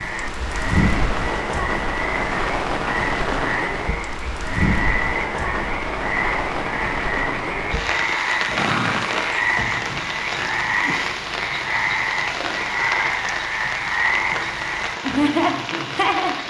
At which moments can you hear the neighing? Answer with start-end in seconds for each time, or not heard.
8.3-9.7.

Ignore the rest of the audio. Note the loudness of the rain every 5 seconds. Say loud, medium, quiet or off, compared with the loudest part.
loud, loud, loud, medium.